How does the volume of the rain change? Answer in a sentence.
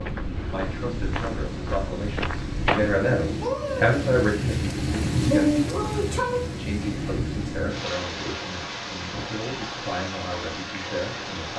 The loudness of the rain goes up, then down.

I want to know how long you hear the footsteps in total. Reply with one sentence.
The footsteps can be heard for 3 seconds in total.